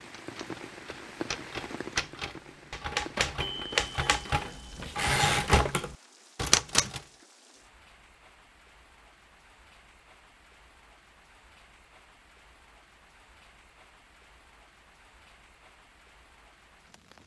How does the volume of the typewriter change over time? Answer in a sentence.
The loudness of the typewriter goes up.